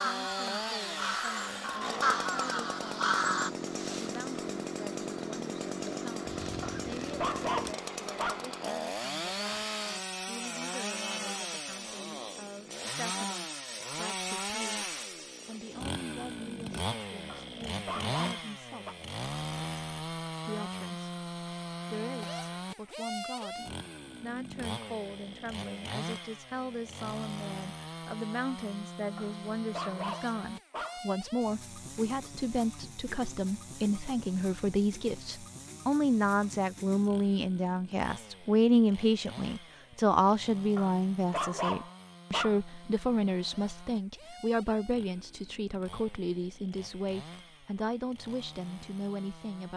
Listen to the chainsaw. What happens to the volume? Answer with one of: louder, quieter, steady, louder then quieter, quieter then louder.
quieter.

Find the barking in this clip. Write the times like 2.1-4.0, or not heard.
6.6-8.4, 17.2-18.9, 29.1-31.0, 40.8-42.6.